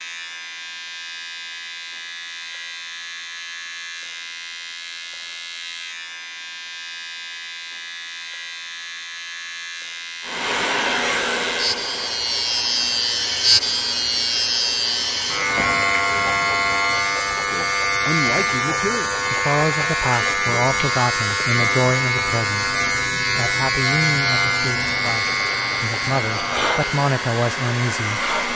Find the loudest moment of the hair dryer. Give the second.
11 s.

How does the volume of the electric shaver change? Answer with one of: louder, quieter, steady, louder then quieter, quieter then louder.
louder.